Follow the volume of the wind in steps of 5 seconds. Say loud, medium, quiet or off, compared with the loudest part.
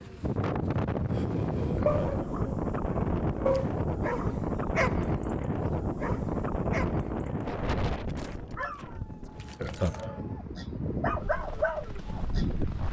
loud, loud, medium.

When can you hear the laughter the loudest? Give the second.
10 s.